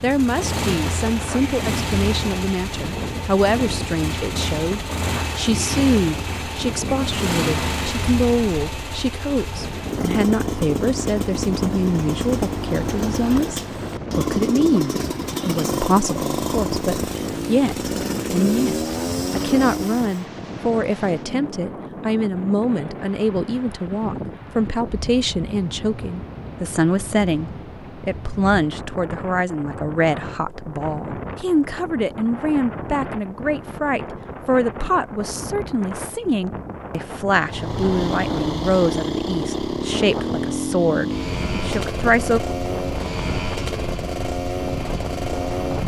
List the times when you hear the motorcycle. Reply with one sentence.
You can hear the motorcycle from 0.0 to 20.2 s and from 37.3 to 45.8 s.